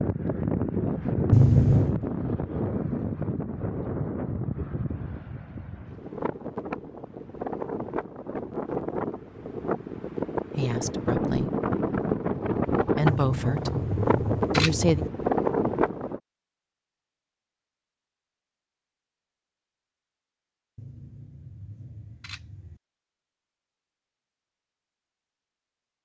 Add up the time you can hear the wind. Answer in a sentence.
You can hear the wind for 16 seconds altogether.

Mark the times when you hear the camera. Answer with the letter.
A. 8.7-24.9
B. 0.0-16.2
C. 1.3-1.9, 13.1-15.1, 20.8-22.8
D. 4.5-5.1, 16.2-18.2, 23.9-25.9
C.